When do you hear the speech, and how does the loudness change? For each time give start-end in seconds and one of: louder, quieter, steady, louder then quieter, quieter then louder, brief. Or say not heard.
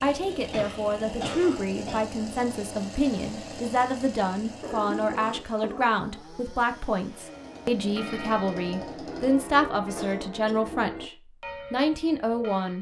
0.0-11.1 steady
11.7-12.7 brief.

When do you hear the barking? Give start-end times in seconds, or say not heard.
not heard.